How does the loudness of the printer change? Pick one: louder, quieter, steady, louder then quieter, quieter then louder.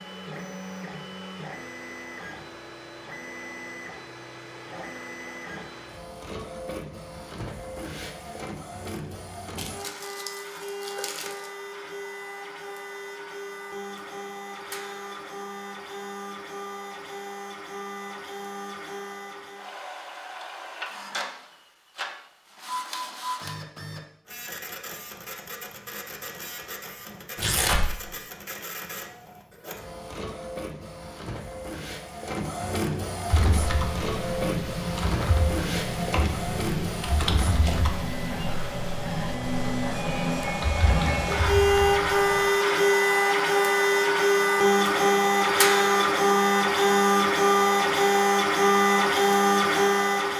louder.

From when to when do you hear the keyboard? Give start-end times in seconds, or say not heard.
33.2-42.5.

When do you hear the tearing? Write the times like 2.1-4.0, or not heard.
9.6-11.5, 27.4-28.0.